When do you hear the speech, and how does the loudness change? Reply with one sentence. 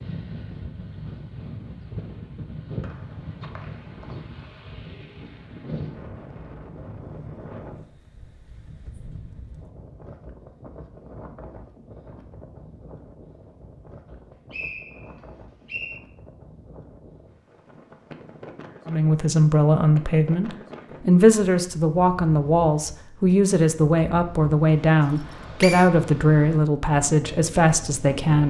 The speech can be heard from 18.9 to 28.4 s, at a steady volume.